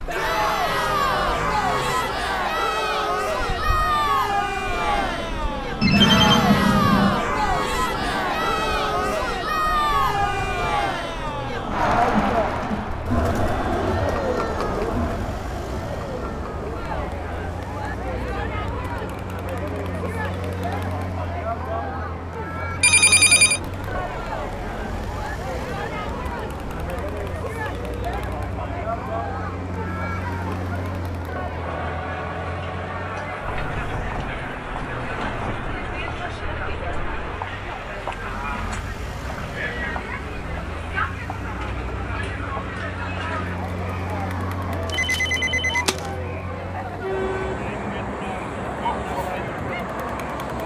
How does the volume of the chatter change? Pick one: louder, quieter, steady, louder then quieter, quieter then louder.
quieter.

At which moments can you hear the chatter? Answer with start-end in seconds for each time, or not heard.
0.1-50.6.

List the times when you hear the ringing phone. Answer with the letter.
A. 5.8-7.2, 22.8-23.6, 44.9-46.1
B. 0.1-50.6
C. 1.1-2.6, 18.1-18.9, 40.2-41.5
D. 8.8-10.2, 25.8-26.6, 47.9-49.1
A.